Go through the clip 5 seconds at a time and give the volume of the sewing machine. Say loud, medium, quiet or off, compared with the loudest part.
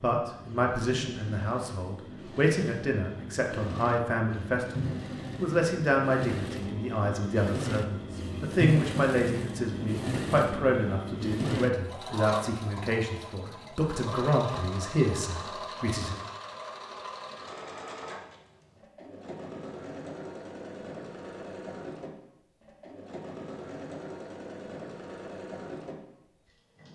medium, loud, loud, medium, medium, medium.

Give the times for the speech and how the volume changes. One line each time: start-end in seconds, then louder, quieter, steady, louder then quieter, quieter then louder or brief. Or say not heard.
0.0-16.2 steady.